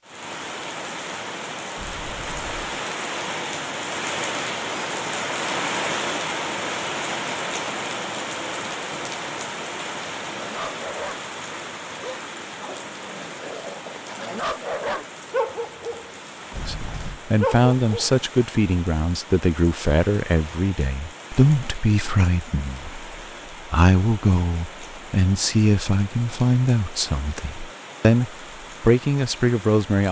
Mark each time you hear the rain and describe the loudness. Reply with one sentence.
The rain can be heard from 0.0 to 30.0 s, getting quieter.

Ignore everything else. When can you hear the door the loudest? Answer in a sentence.
The loudest moment of the door is at 17 seconds.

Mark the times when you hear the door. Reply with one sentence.
The door can be heard from 1.8 to 2.5 s and from 16.5 to 17.2 s.